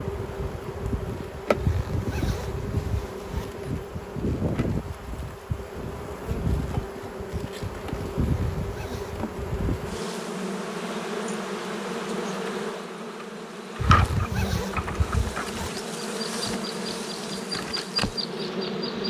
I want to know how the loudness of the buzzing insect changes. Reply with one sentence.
The volume of the buzzing insect stays about the same.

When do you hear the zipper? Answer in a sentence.
The zipper can be heard from 1.6 to 3.5 s, from 8.2 to 9.2 s and from 13.8 to 15.7 s.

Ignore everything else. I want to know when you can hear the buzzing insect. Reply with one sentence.
The buzzing insect can be heard from 0.0 to 19.0 s.